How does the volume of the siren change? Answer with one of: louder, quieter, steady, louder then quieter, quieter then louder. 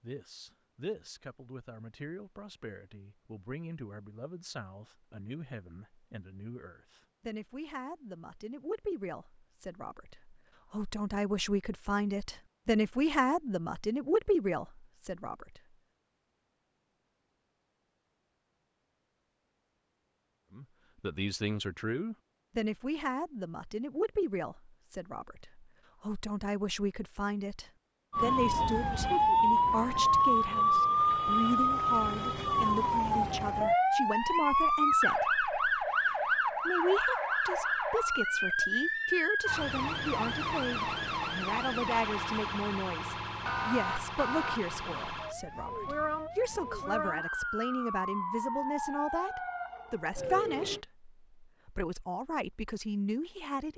quieter.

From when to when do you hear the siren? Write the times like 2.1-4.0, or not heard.
28.1-50.9.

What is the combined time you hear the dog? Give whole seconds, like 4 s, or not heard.
not heard.